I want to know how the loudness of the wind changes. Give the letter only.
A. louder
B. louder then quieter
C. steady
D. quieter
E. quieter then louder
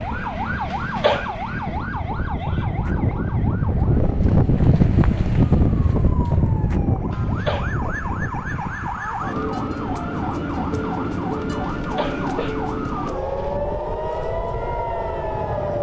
B.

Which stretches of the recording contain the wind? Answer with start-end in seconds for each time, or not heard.
0.0-15.7.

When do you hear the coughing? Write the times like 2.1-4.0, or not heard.
0.7-1.4, 7.1-7.8, 11.8-13.6.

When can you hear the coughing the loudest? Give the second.
1 s.